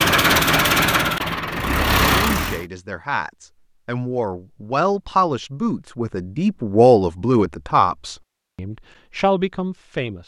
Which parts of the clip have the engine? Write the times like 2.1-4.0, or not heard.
0.0-2.6.